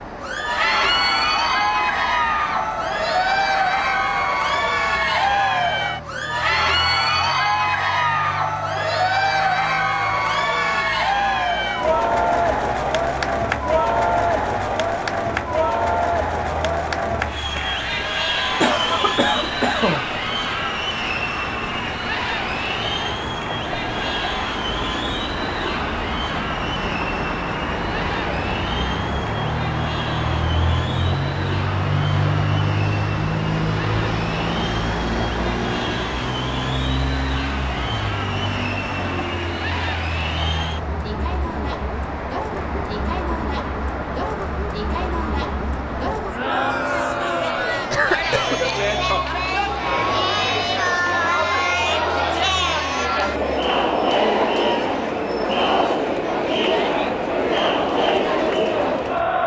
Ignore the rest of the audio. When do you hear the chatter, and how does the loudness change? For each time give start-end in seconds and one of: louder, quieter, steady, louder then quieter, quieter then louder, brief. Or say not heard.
0.1-59.4 quieter then louder.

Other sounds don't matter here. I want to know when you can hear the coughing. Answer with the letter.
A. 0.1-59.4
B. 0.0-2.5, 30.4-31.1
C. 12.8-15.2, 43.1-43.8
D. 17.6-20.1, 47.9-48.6
D.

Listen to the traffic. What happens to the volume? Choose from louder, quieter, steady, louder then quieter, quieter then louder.
louder then quieter.